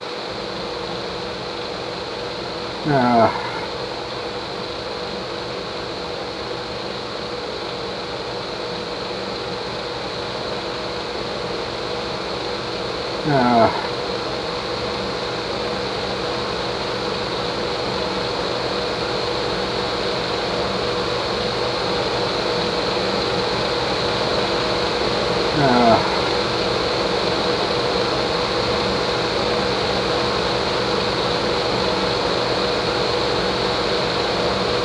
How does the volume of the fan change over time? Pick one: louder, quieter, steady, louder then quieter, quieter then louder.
louder.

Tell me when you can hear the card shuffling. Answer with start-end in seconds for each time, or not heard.
not heard.